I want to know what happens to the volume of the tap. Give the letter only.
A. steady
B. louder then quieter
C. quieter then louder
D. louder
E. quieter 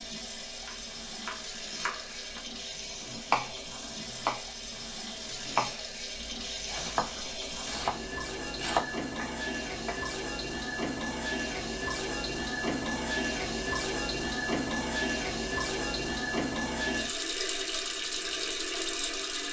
D.